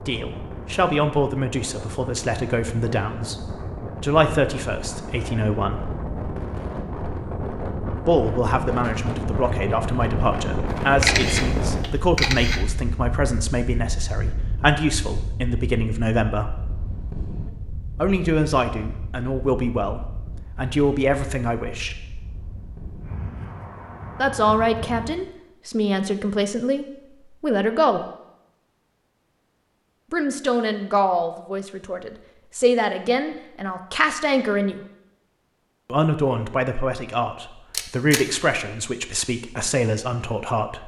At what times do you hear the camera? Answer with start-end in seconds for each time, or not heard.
11.0-12.6, 37.7-38.2.